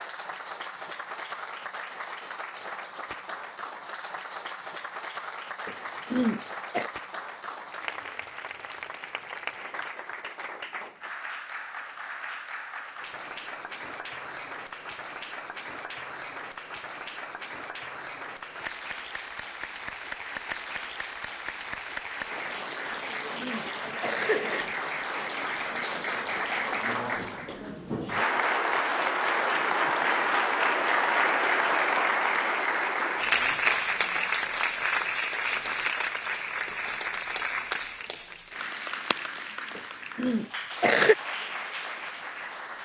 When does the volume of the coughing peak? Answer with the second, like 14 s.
41 s.